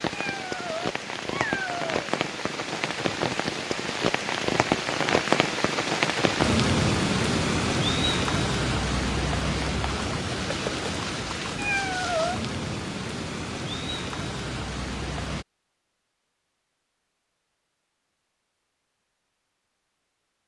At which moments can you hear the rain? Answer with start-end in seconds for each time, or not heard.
0.0-15.4.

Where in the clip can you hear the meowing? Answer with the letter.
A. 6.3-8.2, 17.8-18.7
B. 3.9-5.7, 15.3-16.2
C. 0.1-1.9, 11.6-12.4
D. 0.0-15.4
C.